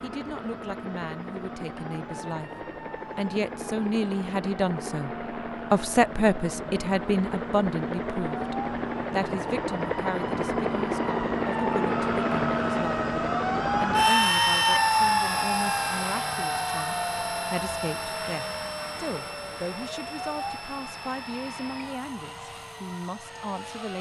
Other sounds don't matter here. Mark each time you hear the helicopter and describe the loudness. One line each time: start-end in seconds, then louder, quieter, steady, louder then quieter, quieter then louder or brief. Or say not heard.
0.0-23.9 louder then quieter.